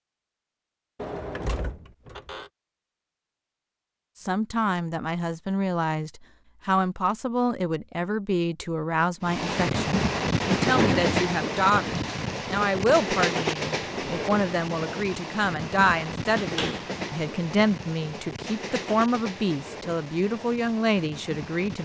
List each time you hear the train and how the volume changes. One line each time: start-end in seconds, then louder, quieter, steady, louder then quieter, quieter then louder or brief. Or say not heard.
9.2-21.7 quieter.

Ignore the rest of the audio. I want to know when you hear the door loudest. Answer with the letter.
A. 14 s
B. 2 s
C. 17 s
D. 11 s
D.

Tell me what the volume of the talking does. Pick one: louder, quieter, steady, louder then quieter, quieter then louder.
steady.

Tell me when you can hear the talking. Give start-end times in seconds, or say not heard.
4.2-21.7.